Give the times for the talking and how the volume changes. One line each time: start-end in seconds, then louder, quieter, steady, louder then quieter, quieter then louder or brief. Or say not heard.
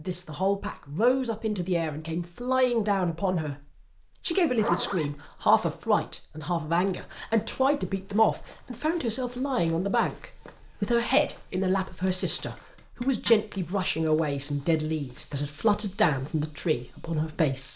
0.0-17.7 steady.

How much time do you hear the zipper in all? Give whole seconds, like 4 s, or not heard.
2 s.